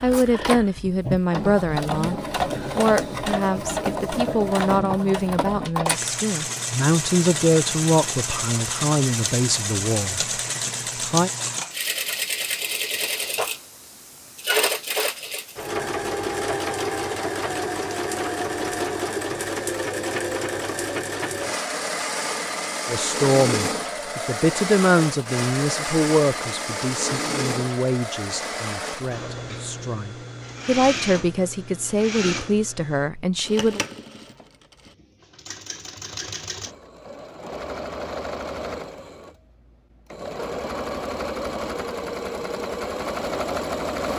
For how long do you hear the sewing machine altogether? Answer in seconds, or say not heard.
44 s.